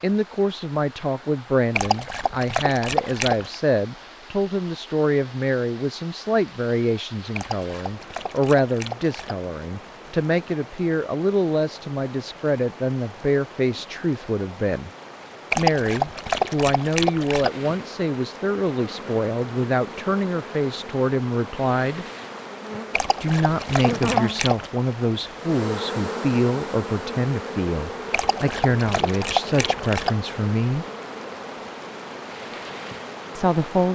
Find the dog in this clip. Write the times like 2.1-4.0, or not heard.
1.8-3.5, 7.3-9.3, 15.5-17.5, 22.9-24.7, 28.1-30.1.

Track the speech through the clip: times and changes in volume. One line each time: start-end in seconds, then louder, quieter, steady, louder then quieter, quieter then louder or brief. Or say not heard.
0.0-14.9 steady
15.6-22.1 steady
23.2-30.9 steady
33.4-33.9 brief.